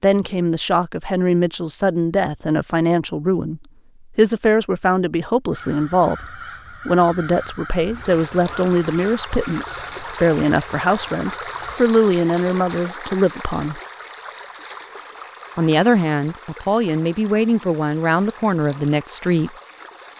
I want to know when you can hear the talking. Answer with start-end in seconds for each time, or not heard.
0.0-13.8, 15.6-19.5.